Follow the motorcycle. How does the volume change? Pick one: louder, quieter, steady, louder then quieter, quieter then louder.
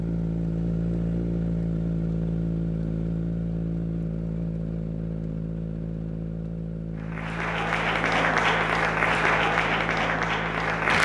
quieter.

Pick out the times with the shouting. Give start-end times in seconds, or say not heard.
not heard.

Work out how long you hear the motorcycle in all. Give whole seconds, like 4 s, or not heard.
11 s.